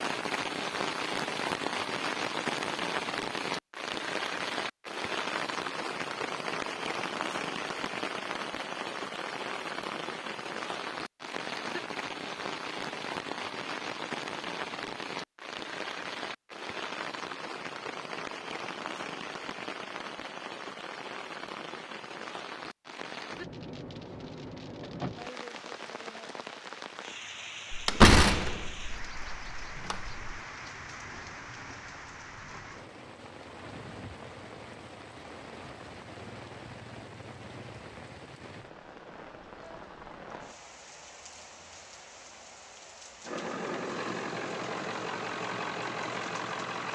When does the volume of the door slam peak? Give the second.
28 s.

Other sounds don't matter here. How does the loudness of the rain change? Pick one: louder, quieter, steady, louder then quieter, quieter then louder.
quieter.